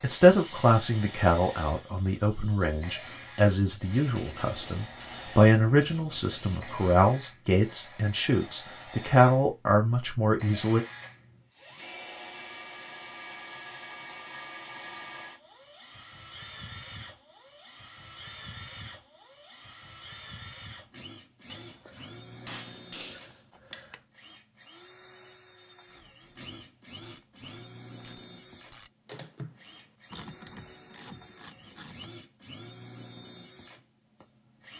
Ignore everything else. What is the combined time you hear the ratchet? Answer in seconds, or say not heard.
6 s.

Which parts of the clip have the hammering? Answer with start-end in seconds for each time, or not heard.
21.5-24.0.